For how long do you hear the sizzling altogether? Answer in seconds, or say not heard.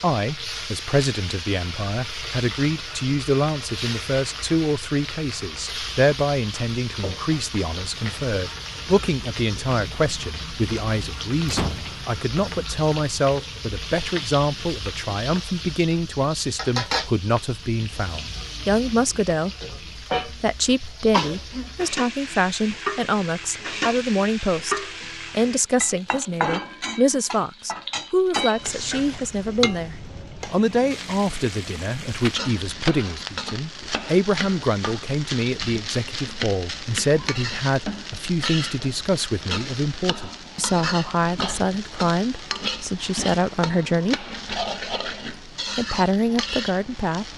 47 s.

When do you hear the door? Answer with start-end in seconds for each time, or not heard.
10.8-12.1.